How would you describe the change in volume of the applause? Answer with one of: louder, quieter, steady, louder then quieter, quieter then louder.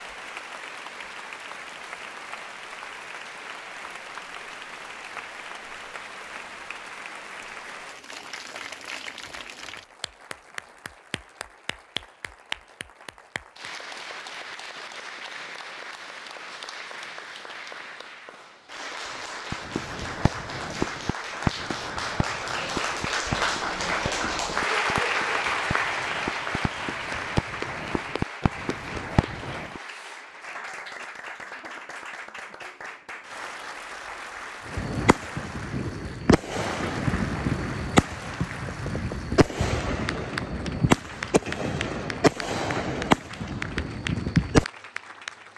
louder then quieter.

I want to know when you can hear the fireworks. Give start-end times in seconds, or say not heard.
19.5-29.8, 34.6-44.6.